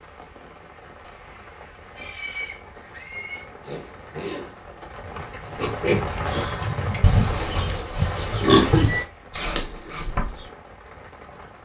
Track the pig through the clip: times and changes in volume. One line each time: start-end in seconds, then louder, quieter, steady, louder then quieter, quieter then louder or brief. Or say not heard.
1.9-10.3 louder.